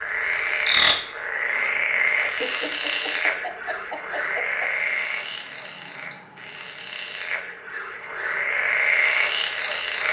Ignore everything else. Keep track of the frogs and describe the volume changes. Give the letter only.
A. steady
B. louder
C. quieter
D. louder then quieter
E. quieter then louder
E.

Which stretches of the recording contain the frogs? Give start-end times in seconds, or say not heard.
0.0-10.0.